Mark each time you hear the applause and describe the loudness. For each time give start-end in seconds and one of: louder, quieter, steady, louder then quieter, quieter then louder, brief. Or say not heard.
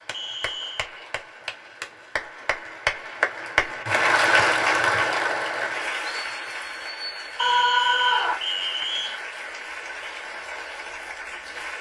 0.0-11.7 louder then quieter.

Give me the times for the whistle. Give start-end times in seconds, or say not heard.
0.1-0.9, 7.3-9.2.